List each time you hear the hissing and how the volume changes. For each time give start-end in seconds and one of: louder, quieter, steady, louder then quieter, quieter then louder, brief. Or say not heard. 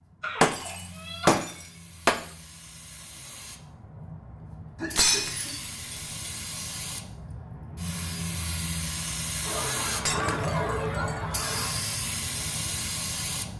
0.0-13.5 louder.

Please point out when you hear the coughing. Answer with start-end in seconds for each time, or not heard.
0.2-1.4, 4.8-5.5, 9.4-11.8.